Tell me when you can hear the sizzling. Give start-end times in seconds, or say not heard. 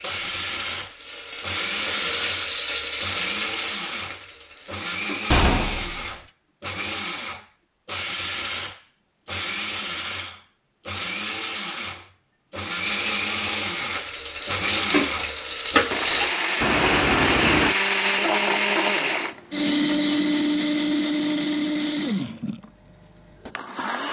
0.0-5.2, 12.8-16.4.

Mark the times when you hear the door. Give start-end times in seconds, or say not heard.
5.3-6.2, 16.6-17.8.